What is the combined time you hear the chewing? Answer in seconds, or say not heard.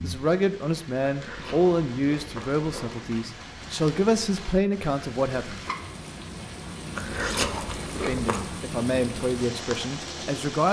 4 s.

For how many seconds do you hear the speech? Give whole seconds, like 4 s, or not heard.
8 s.